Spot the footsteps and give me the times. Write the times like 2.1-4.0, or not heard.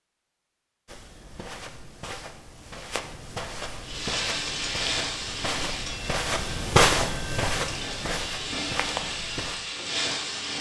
0.8-9.6.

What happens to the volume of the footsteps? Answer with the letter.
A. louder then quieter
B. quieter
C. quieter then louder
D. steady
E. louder
A.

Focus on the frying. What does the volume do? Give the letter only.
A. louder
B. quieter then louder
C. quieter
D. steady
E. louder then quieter
B.